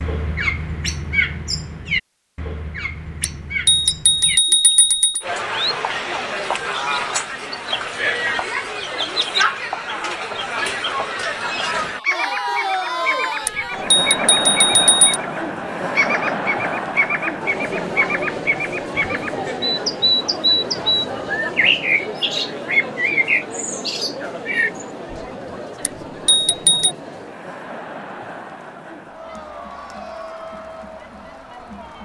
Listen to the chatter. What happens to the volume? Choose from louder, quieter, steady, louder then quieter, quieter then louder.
quieter.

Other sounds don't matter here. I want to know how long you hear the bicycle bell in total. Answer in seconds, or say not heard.
5 s.